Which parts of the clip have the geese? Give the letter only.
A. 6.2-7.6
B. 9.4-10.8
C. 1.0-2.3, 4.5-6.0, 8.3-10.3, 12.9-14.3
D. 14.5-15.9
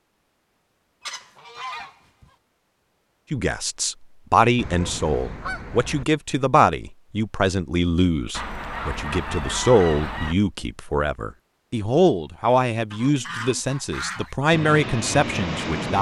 C.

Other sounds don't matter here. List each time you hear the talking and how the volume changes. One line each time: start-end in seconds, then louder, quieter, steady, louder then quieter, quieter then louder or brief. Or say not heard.
3.3-15.9 steady.